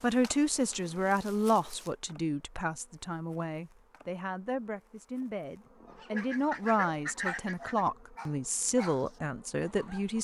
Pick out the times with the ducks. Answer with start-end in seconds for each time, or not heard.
6.2-7.8.